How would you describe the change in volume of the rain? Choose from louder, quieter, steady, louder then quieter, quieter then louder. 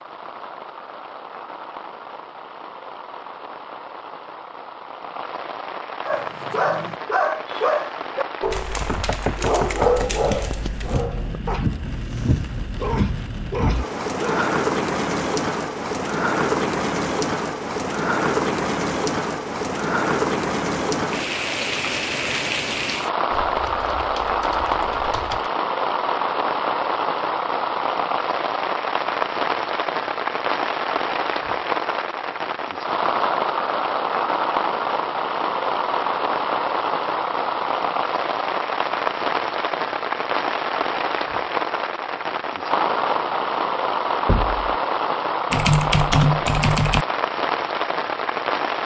louder.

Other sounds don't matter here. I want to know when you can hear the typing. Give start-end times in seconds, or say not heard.
8.5-11.1, 23.3-25.5, 45.5-47.0.